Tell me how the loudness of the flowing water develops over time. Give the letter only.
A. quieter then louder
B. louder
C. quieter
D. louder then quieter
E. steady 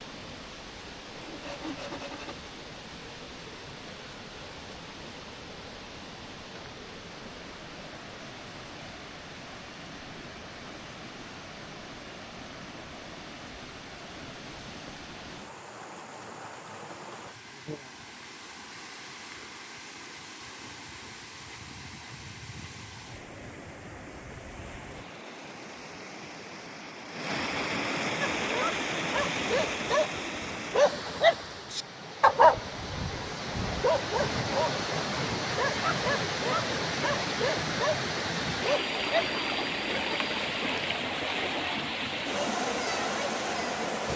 B.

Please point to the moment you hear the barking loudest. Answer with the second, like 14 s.
32 s.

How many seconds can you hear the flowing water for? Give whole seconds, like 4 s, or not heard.
44 s.